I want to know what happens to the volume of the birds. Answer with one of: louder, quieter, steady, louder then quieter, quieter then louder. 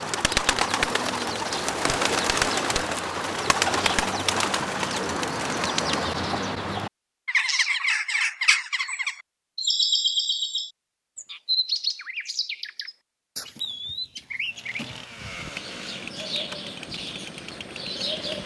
quieter.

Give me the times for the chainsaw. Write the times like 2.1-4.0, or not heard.
14.4-18.4.